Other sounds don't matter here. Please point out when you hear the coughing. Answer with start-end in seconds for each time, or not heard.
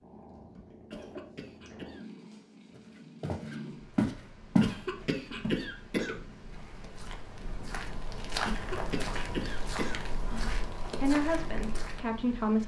0.9-2.0, 4.6-6.2, 8.4-10.5.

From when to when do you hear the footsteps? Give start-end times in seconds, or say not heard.
2.8-12.2.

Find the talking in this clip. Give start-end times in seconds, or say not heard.
11.0-12.6.